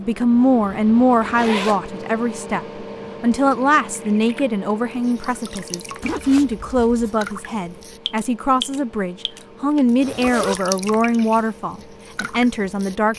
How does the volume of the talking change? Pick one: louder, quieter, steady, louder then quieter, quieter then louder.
steady.